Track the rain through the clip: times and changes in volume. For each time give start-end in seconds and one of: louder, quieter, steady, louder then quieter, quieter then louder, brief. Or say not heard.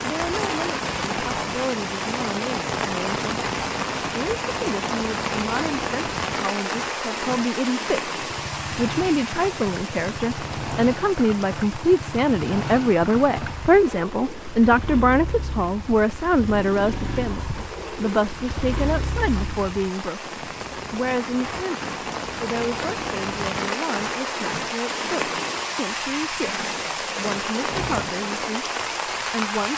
0.0-29.7 quieter then louder.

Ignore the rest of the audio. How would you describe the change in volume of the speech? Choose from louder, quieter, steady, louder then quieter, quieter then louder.
louder then quieter.